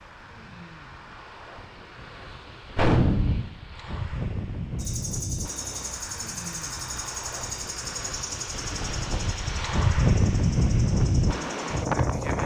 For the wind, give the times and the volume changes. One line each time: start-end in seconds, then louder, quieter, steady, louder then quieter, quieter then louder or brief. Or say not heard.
0.0-12.4 louder.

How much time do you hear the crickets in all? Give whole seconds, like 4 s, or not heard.
8 s.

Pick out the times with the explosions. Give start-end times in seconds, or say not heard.
2.8-3.5.